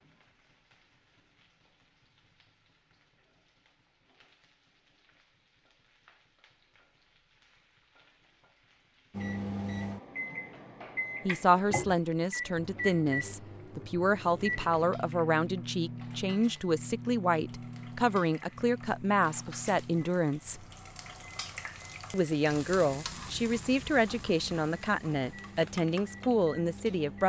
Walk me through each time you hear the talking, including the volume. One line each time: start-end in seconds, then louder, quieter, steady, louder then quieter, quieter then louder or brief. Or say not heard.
11.2-20.6 steady
22.1-27.2 steady.